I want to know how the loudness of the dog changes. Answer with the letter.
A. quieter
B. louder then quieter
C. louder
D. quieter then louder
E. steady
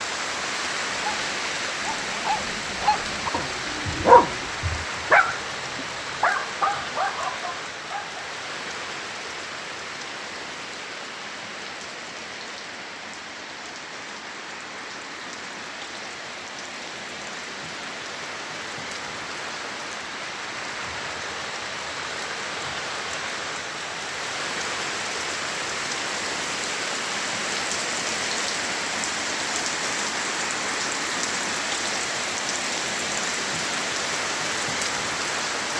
B.